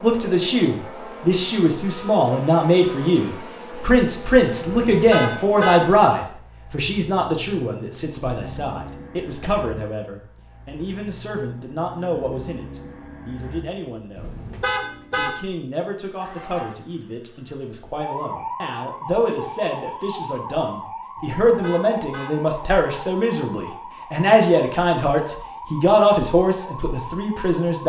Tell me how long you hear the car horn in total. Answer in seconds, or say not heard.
4 s.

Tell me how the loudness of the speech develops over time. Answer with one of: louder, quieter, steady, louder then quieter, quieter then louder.
quieter then louder.